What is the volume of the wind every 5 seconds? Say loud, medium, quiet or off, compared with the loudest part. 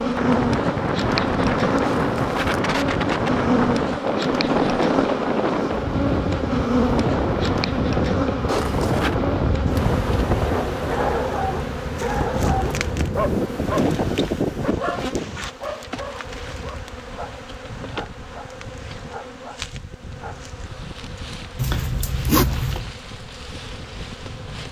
loud, loud, loud, quiet, quiet.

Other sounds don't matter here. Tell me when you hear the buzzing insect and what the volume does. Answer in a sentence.
The buzzing insect can be heard from 0.0 to 24.6 s, getting quieter.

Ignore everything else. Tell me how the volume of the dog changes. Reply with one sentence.
The volume of the dog goes down.